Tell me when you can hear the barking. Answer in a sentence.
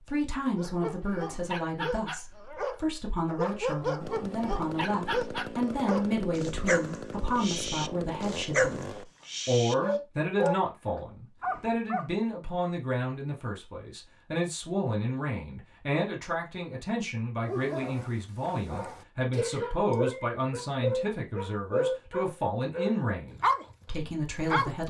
The barking can be heard from 0.6 to 12.1 s and from 17.4 to 24.8 s.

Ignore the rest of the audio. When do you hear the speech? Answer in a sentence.
The speech can be heard from 0.1 to 24.8 s.